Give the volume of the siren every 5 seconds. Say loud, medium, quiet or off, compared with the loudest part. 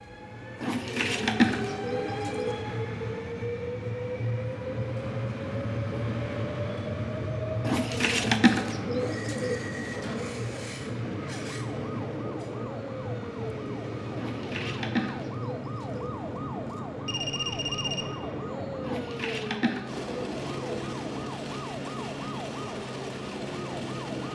off, off, loud, loud, loud.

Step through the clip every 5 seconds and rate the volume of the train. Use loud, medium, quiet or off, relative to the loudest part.
loud, loud, loud, medium, medium.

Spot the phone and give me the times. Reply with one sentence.
You can hear the phone from 17.1 to 18.1 s.